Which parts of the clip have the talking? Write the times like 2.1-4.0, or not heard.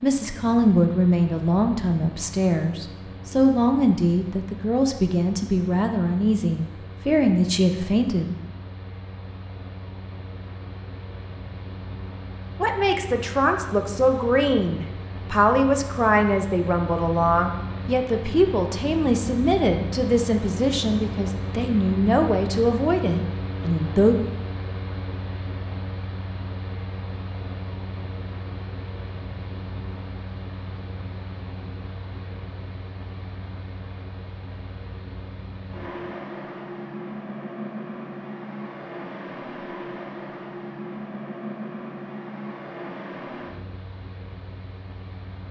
0.0-8.3, 12.6-24.1.